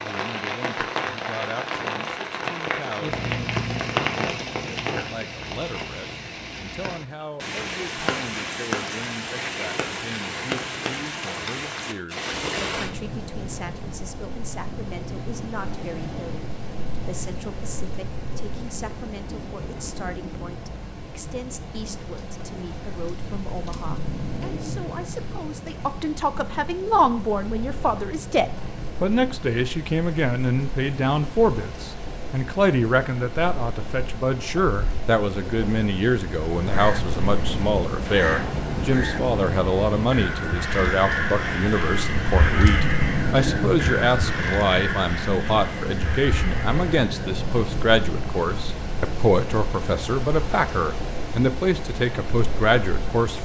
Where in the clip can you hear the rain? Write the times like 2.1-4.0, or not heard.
0.0-53.4.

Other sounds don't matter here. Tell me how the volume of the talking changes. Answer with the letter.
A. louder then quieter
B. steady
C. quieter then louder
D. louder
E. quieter
D.